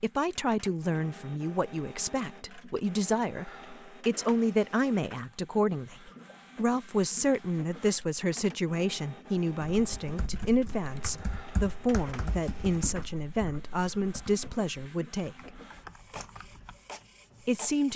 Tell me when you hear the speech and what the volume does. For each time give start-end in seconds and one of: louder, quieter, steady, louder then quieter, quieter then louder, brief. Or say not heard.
0.0-15.6 steady
17.4-17.9 brief.